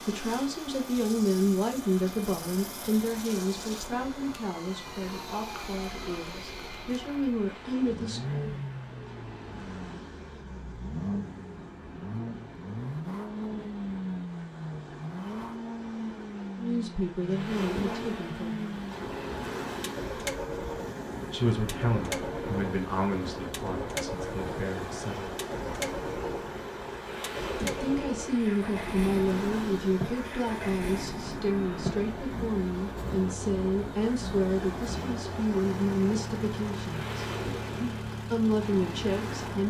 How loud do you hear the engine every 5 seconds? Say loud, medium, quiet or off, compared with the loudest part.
medium, loud, loud, loud, loud, loud, loud, loud.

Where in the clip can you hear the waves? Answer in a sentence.
The waves can be heard from 0.0 to 39.6 s.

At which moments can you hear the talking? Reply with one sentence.
You can hear the talking from 0.1 to 8.4 s, from 16.6 to 18.8 s, from 21.3 to 25.4 s and from 27.6 to 39.6 s.